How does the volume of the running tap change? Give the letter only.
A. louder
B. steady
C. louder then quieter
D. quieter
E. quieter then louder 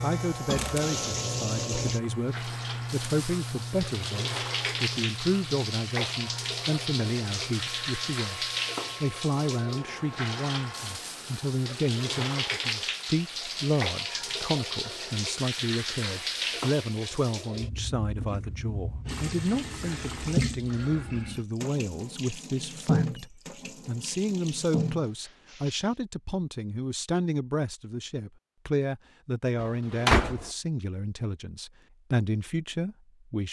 B.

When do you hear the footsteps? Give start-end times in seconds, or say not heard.
not heard.